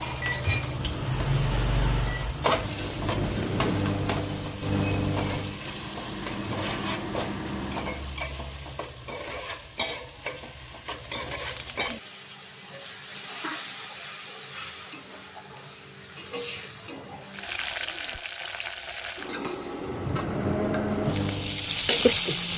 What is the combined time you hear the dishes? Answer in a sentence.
The dishes can't be heard in this clip.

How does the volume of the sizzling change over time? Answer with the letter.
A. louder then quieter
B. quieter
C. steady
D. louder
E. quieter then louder
E.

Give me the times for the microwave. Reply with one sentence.
The microwave can be heard from 0.0 to 8.2 s and from 19.8 to 22.5 s.